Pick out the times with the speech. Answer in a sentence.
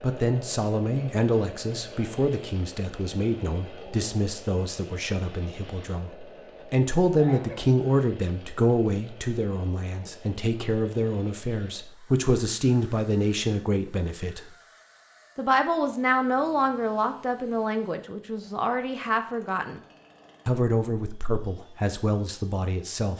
The speech can be heard from 0.0 to 14.5 s, from 15.3 to 19.8 s and from 20.4 to 23.1 s.